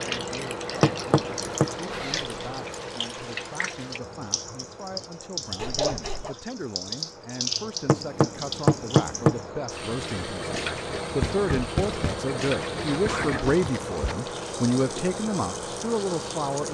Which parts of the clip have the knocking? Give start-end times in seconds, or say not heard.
0.8-1.7, 7.8-9.4, 11.2-12.3.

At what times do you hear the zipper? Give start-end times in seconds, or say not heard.
1.9-2.4, 5.5-6.3, 12.7-14.2.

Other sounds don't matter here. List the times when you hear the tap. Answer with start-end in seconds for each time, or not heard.
0.0-16.6.